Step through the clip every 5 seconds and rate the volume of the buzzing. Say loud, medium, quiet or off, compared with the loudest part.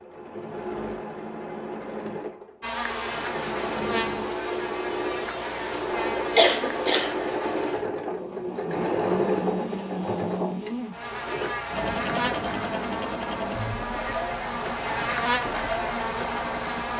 loud, medium, loud, loud.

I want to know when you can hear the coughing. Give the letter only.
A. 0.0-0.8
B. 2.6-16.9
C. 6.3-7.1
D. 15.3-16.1
C.